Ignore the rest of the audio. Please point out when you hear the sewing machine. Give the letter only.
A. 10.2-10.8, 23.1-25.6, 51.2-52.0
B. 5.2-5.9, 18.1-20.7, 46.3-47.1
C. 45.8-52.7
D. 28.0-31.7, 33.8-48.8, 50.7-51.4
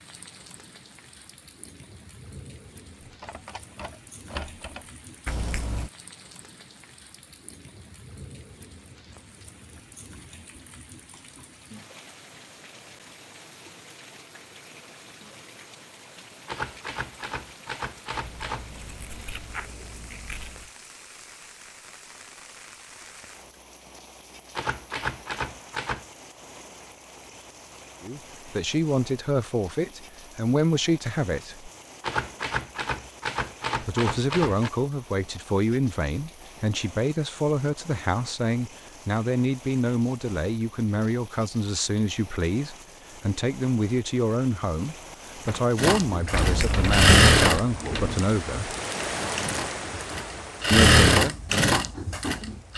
C.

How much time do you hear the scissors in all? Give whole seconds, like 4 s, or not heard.
4 s.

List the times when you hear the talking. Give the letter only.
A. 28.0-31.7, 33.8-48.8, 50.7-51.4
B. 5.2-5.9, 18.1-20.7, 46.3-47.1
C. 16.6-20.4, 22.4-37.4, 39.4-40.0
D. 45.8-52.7
A.